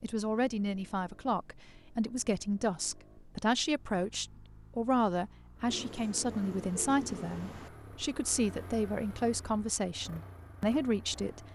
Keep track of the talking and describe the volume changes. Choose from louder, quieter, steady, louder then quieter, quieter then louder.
steady.